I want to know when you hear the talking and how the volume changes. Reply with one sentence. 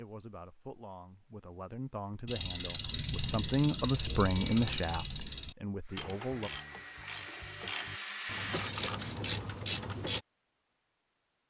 The talking can be heard from 0.0 to 6.5 s, getting louder then quieter.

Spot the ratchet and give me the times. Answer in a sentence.
You can hear the ratchet from 2.2 to 10.2 s.